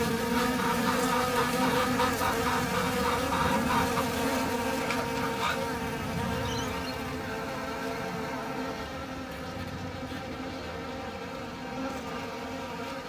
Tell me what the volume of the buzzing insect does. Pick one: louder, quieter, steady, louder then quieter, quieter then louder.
quieter.